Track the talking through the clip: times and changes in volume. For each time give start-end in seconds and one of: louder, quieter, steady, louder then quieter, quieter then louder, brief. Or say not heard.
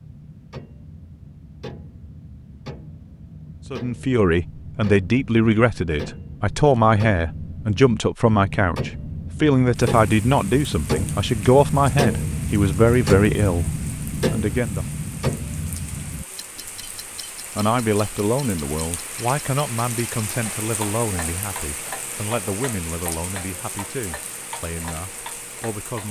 3.7-14.8 steady
17.6-26.0 quieter.